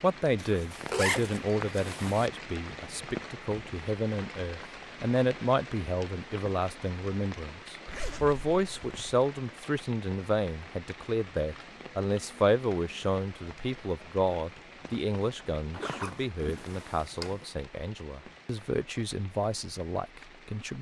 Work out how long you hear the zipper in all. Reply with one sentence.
The zipper can be heard for 5 seconds in total.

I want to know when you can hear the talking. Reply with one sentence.
You can hear the talking from 0.0 to 20.7 s.